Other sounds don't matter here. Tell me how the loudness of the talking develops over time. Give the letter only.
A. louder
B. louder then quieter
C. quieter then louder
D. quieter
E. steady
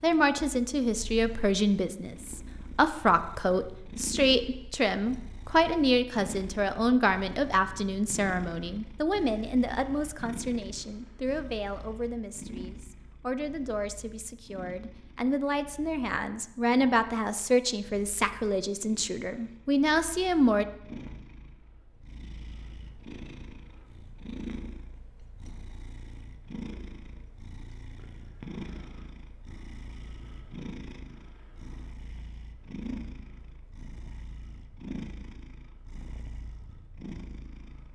C.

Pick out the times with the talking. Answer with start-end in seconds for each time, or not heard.
0.0-20.6.